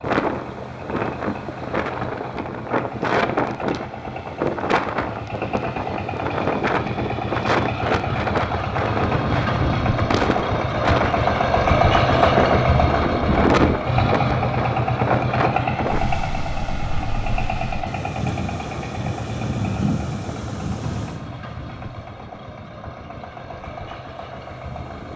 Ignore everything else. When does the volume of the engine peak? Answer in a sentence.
The volume of the engine peaks at 12 seconds.